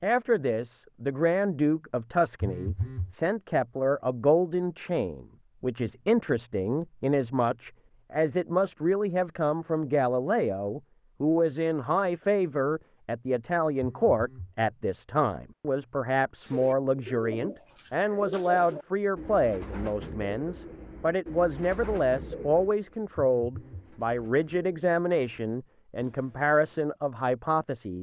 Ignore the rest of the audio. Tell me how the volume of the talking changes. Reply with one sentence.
The volume of the talking stays about the same.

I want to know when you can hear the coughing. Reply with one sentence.
The coughing can't be heard in this clip.